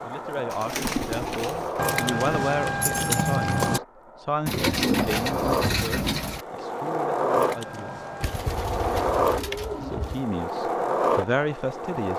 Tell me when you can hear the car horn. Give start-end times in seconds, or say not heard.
not heard.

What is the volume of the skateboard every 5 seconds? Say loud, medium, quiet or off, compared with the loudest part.
medium, loud, loud.